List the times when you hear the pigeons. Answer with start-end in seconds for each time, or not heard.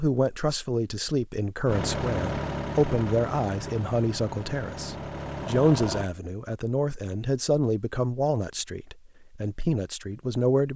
not heard.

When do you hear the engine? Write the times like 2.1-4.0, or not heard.
1.6-6.1.